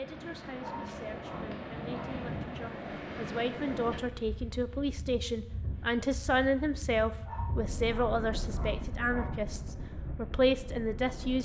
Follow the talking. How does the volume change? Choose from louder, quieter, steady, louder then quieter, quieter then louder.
louder.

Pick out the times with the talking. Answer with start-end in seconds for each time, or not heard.
0.0-11.4.